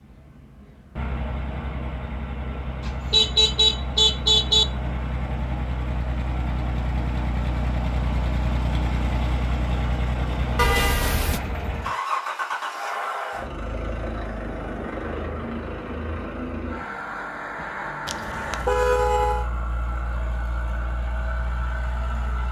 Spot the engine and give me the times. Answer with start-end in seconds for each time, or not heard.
0.0-22.4.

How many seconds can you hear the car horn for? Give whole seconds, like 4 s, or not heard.
4 s.